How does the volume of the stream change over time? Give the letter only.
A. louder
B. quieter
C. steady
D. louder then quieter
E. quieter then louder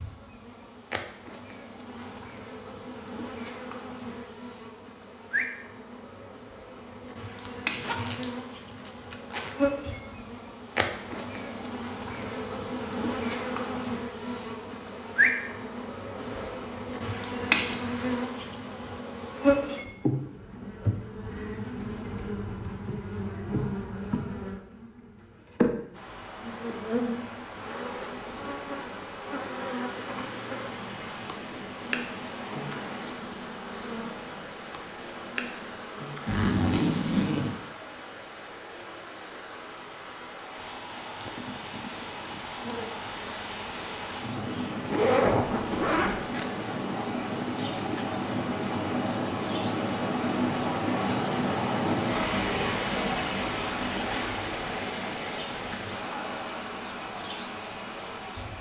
A.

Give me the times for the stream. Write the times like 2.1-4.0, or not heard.
25.9-58.5.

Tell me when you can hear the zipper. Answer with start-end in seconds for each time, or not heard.
7.5-9.6, 36.2-37.5, 44.9-46.2.